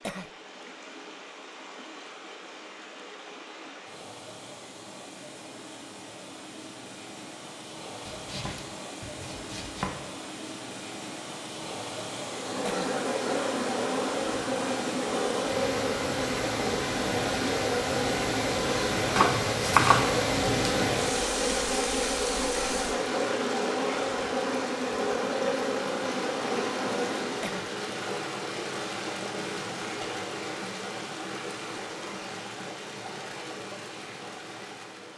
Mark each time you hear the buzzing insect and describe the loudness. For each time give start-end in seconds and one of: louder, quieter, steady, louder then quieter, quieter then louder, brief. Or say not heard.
12.2-27.6 steady.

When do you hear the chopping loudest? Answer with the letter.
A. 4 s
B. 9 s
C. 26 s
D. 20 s
D.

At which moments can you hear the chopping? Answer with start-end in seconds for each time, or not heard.
8.1-9.9, 19.1-20.7.